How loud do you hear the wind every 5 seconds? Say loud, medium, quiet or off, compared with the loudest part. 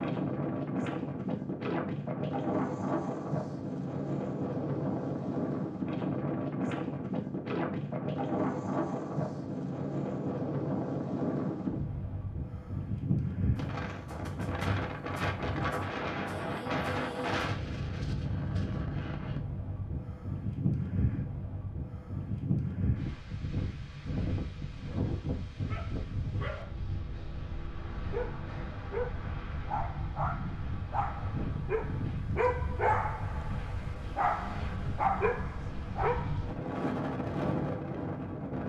loud, loud, loud, loud, loud, medium, medium, loud.